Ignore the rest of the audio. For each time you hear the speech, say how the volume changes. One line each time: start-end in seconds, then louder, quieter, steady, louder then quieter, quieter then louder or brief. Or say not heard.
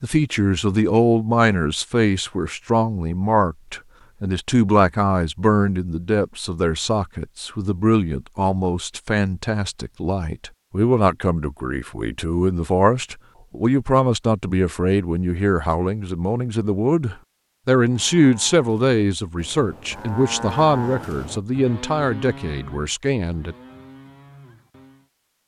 0.0-23.6 steady.